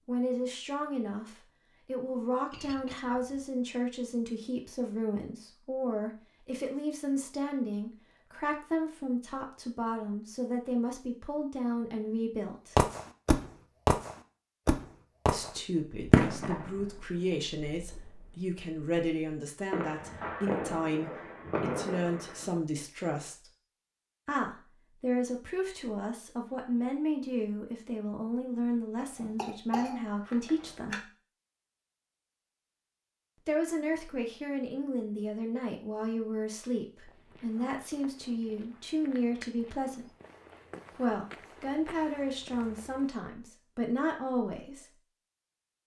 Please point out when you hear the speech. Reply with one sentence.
You can hear the speech from 0.1 to 12.8 s, from 15.3 to 23.5 s, from 24.2 to 31.1 s, from 33.5 to 40.1 s and from 41.0 to 45.0 s.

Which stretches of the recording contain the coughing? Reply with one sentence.
The coughing can be heard from 28.9 to 31.0 s.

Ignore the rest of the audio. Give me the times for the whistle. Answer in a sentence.
The whistle can't be heard in this clip.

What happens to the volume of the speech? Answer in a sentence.
The volume of the speech stays about the same.